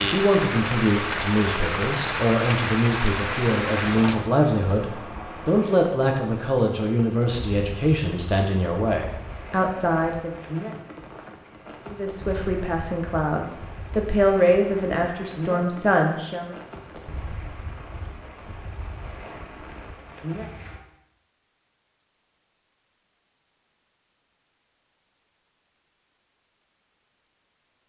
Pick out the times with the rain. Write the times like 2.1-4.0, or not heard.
0.0-20.8.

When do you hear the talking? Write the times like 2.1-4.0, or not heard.
0.0-10.3, 11.8-16.6.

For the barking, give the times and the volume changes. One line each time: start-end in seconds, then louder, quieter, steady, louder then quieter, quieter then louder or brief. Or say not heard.
not heard.